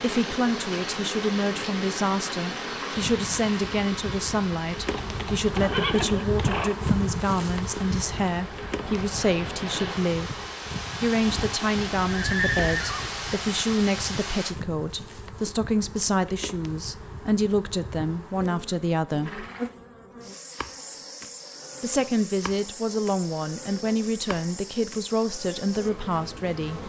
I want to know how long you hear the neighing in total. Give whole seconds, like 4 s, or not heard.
5 s.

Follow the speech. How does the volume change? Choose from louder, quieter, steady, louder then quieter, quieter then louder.
steady.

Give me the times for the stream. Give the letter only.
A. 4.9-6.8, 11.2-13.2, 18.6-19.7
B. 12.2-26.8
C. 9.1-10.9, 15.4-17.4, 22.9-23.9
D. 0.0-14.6
D.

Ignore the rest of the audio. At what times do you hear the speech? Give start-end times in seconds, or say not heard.
0.0-10.3, 11.0-19.4, 21.8-26.8.